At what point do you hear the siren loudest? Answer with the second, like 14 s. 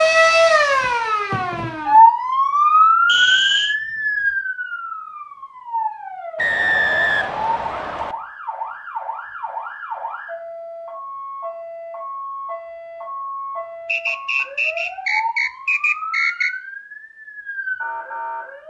2 s.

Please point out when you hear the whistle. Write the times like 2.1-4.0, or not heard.
3.0-3.8, 6.3-8.2, 13.8-16.5.